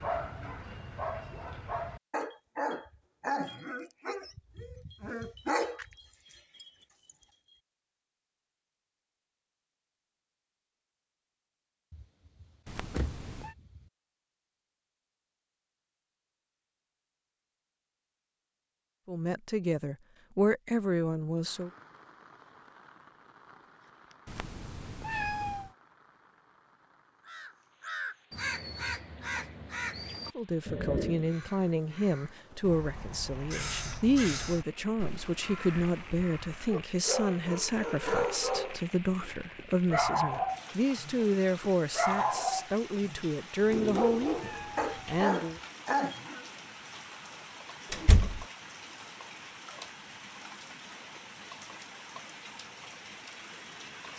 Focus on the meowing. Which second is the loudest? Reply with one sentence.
The loudest moment of the meowing is at 25 seconds.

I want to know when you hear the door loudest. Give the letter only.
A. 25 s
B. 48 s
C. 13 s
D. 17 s
B.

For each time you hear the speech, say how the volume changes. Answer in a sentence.
You can hear the speech briefly from 19.1 to 21.7 s; and from 30.4 to 45.6 s, at a steady volume.